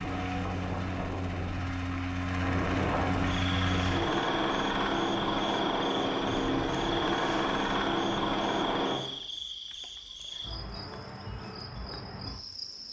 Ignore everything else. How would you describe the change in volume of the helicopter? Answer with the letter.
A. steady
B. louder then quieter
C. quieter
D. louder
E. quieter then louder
D.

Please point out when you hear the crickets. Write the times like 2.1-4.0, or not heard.
3.2-12.8.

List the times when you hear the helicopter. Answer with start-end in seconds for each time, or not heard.
0.0-9.0.